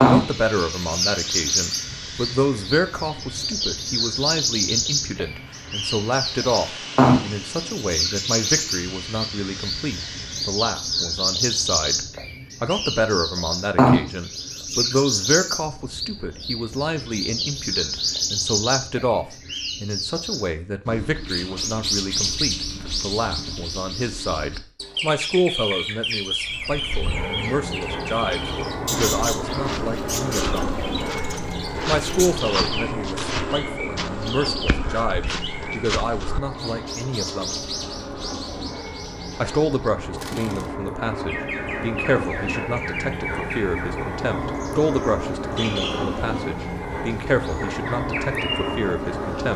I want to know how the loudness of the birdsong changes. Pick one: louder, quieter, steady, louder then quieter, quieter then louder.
quieter.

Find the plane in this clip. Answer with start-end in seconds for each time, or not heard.
0.0-10.7, 26.4-49.5.